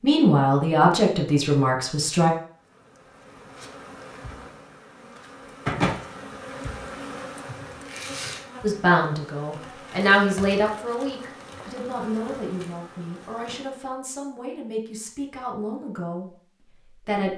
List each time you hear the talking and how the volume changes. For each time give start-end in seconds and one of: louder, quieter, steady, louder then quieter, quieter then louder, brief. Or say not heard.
0.0-2.3 brief
8.6-17.3 quieter.